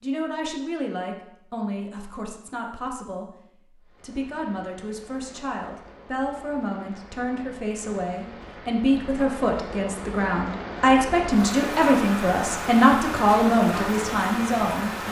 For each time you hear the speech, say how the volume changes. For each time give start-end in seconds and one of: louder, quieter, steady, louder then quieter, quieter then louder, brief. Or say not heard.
0.0-15.0 louder.